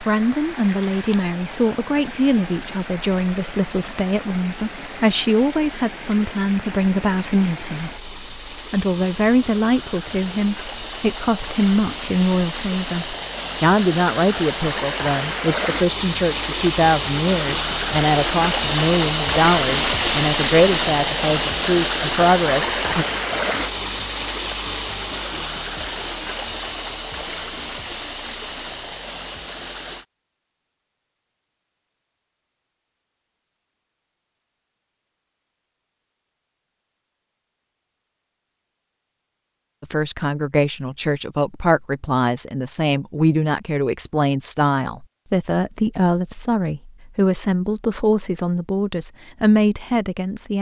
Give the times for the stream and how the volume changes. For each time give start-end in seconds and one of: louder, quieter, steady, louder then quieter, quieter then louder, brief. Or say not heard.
0.0-30.1 louder then quieter.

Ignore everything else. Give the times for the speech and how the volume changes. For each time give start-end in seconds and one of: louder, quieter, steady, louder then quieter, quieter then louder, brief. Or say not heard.
0.0-23.1 steady
39.8-50.5 steady.